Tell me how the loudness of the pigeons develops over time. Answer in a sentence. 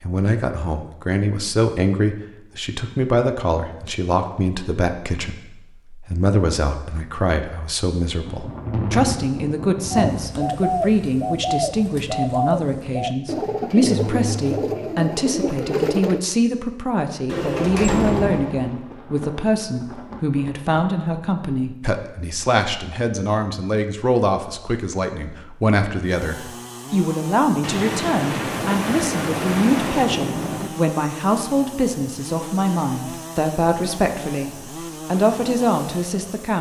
The volume of the pigeons stays about the same.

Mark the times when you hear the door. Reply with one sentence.
The door can be heard from 17.2 to 18.7 s.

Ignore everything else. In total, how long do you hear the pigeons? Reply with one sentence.
You can hear the pigeons for 6 seconds altogether.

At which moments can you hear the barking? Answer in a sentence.
The barking can't be heard in this clip.